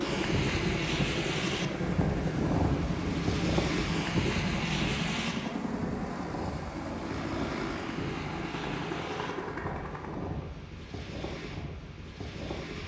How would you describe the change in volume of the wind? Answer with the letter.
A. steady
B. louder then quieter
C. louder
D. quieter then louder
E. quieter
E.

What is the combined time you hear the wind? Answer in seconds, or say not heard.
13 s.